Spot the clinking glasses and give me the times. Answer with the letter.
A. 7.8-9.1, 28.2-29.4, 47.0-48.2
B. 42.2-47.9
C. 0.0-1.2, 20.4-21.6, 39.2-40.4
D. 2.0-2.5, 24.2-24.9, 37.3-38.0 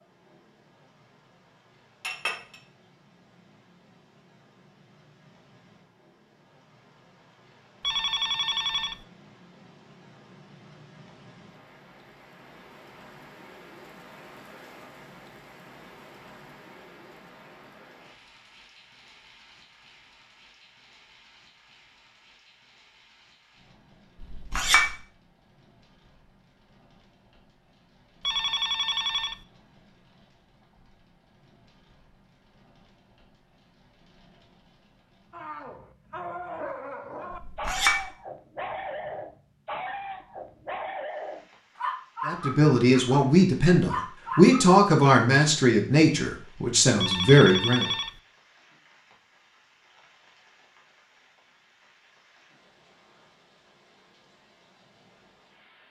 D.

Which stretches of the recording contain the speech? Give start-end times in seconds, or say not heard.
42.2-47.9.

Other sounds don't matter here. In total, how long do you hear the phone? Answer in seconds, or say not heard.
4 s.